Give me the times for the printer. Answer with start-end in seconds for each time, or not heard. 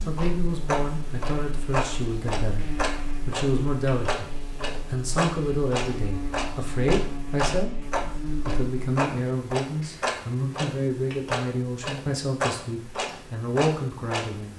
not heard.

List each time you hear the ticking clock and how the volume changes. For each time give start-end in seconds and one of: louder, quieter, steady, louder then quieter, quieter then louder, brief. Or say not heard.
0.0-14.5 steady.